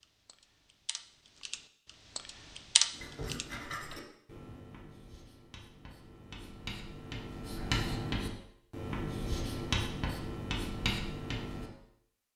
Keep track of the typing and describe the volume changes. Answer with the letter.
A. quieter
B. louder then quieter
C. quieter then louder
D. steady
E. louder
B.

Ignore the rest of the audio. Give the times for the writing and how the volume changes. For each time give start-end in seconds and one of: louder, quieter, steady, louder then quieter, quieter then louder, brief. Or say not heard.
3.0-11.7 quieter then louder.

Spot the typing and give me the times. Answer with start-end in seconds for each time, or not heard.
0.0-4.0.